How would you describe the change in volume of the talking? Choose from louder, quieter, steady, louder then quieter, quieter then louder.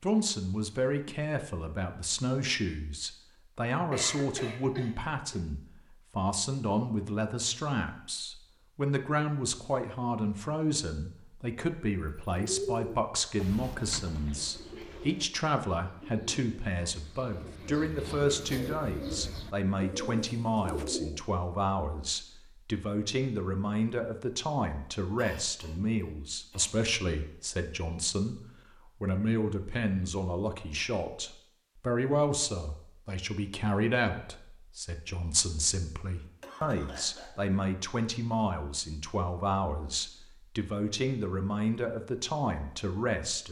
steady.